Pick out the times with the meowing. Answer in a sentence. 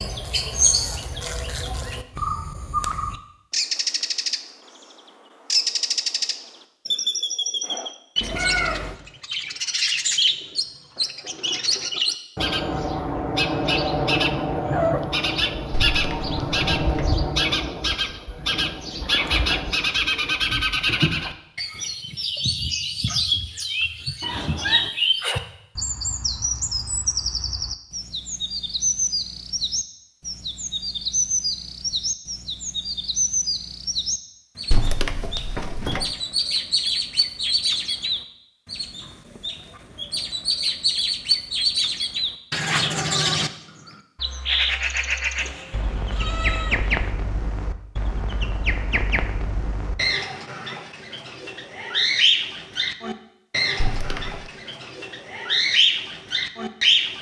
The meowing can be heard from 8.2 to 9.0 s, from 24.2 to 24.9 s and from 45.4 to 47.1 s.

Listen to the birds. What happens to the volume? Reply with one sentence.
The volume of the birds stays about the same.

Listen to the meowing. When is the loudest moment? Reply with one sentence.
The loudest moment of the meowing is at 9 seconds.